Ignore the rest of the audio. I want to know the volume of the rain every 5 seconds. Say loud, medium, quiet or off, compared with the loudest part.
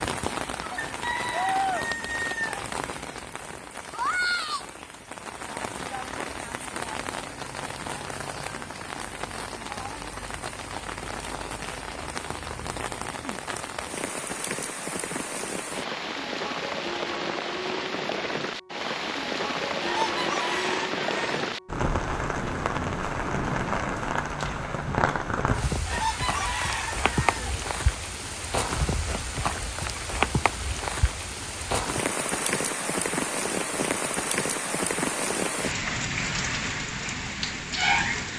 loud, medium, medium, loud, loud, loud, loud, loud.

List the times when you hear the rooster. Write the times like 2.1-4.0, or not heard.
0.8-2.6, 19.8-21.6, 25.9-27.6.